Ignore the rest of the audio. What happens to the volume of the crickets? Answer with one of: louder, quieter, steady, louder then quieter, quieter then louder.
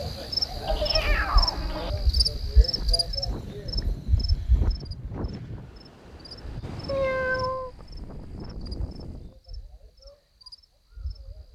quieter.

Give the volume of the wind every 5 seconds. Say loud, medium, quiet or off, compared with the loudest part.
loud, loud, off.